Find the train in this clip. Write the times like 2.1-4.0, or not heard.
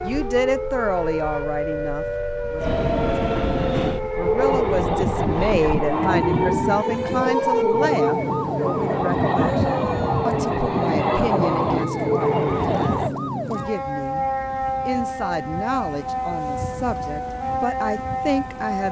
2.5-13.2.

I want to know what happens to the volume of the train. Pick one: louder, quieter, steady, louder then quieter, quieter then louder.
steady.